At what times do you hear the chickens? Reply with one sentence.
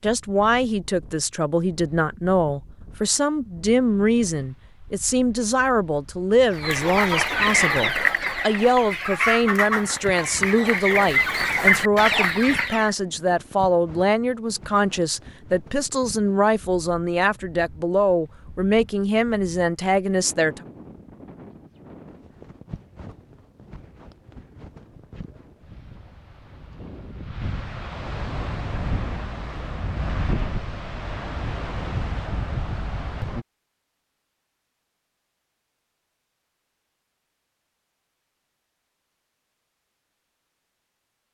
You can hear the chickens from 6.5 to 12.9 s.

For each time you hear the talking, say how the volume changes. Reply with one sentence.
You can hear the talking from 0.0 to 20.6 s, at a steady volume.